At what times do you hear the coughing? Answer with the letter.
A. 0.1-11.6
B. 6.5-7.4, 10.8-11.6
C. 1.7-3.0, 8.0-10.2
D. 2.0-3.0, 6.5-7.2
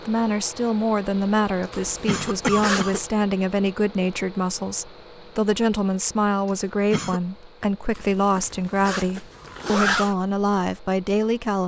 D.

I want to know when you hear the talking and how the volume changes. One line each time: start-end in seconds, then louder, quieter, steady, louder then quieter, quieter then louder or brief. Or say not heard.
0.1-11.6 steady.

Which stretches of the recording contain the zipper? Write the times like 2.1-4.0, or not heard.
1.7-3.0, 8.0-10.2.